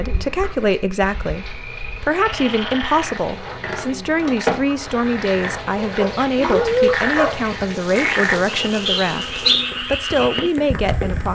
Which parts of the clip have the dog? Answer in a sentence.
The dog can be heard from 5.8 to 7.5 s.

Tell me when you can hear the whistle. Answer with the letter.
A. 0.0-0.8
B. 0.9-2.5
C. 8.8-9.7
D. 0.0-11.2
C.